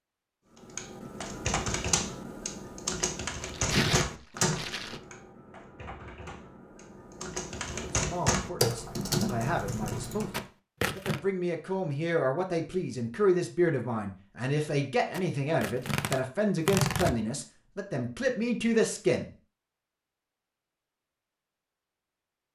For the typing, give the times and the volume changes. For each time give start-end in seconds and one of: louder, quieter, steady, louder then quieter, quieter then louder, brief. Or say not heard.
0.8-10.4 quieter then louder.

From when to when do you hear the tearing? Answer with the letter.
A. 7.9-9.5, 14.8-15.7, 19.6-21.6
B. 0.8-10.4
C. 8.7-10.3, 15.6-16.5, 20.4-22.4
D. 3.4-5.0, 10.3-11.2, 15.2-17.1
D.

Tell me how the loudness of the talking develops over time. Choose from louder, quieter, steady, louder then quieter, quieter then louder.
louder.